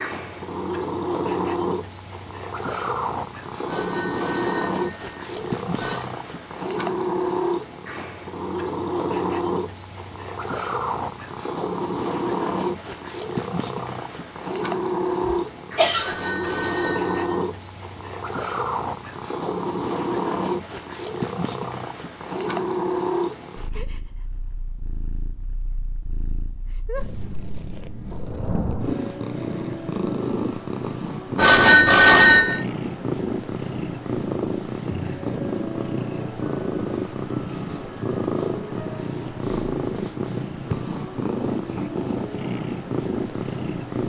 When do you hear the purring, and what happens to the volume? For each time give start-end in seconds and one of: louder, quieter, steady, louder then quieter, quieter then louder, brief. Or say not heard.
0.0-44.0 steady.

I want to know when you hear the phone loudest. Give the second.
32 s.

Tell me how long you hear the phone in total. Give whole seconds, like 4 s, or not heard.
5 s.